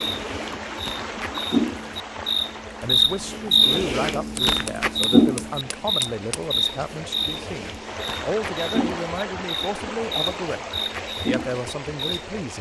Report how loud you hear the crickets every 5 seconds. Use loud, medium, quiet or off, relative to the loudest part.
loud, loud, medium.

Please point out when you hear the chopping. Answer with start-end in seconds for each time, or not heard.
4.3-6.4.